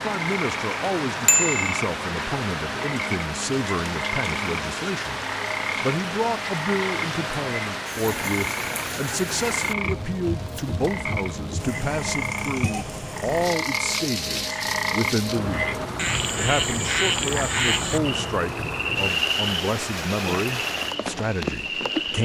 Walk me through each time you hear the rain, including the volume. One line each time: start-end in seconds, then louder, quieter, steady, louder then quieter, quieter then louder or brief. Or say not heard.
0.0-22.2 steady.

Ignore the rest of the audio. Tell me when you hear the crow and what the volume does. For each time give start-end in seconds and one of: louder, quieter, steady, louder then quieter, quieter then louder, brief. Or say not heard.
not heard.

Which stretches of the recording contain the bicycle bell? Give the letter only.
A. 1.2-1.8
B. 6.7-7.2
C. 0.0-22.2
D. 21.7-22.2
A.